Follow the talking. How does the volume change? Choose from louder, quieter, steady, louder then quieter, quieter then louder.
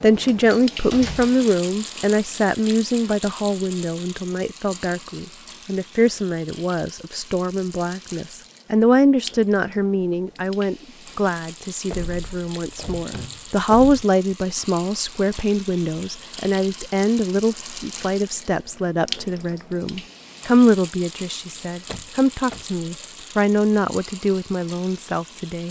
steady.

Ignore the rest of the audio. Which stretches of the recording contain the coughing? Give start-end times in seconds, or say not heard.
not heard.